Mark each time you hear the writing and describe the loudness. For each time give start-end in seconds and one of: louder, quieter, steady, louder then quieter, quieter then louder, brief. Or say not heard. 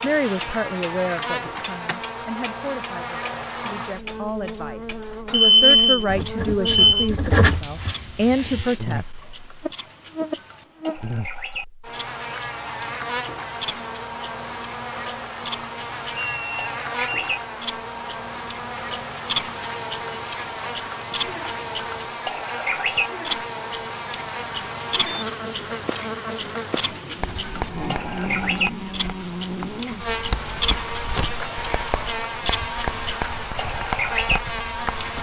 6.0-8.7 brief
27.2-35.1 steady.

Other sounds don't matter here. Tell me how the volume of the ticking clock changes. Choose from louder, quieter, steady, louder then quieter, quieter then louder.
louder.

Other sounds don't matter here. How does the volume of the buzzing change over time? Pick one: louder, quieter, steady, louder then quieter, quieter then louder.
steady.